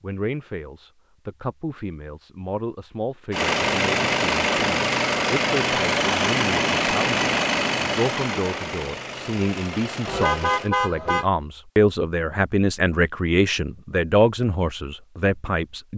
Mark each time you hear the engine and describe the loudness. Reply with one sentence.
The engine can be heard from 3.3 to 10.7 s, getting quieter.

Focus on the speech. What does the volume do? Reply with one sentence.
The loudness of the speech goes up.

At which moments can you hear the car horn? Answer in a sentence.
The car horn can be heard from 10.1 to 11.2 s.